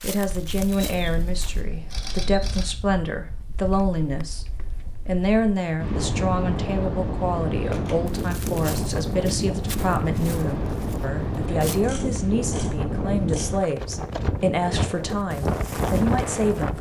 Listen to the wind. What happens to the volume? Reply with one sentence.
The volume of the wind goes up.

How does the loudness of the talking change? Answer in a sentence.
The loudness of the talking stays about the same.